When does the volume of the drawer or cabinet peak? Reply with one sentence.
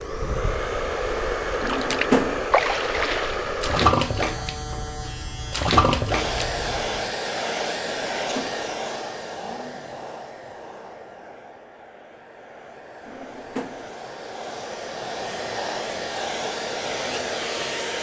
The loudest moment of the drawer or cabinet is at 2 seconds.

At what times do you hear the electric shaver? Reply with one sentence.
The electric shaver can be heard from 3.9 to 7.2 s.